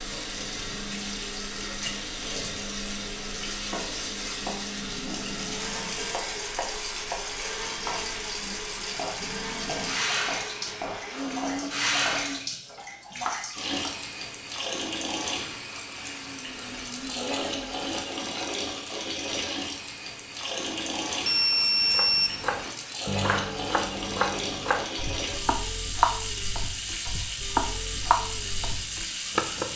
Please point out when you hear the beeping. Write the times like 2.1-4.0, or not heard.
21.2-22.7.